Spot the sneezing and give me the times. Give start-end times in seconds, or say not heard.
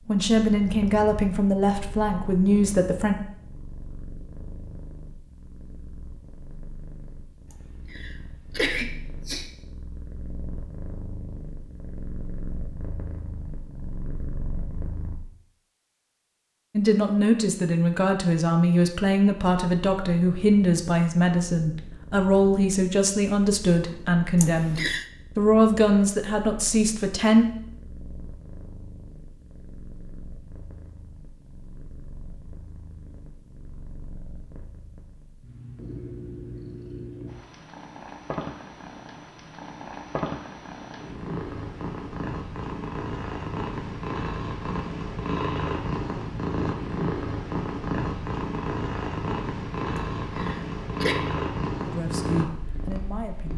7.5-9.5, 24.4-25.1, 50.0-51.2.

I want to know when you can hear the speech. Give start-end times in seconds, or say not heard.
0.1-3.1, 16.8-27.4, 51.8-53.5.